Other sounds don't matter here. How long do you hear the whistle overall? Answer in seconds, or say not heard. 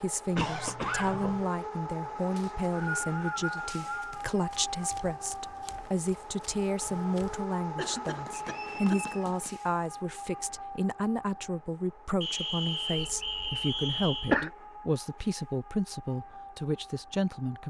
5 s.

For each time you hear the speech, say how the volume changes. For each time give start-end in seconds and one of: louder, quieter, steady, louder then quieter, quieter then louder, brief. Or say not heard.
0.0-17.6 steady.